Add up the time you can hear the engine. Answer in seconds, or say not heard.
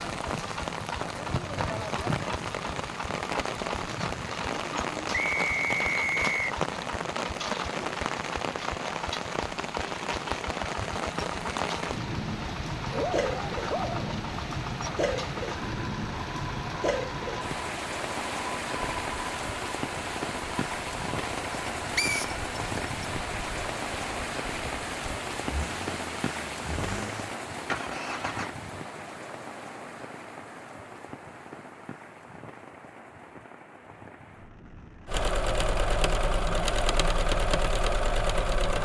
32 s.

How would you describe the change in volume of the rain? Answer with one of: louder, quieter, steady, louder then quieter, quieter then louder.
quieter.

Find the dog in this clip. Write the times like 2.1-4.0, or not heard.
12.9-14.2.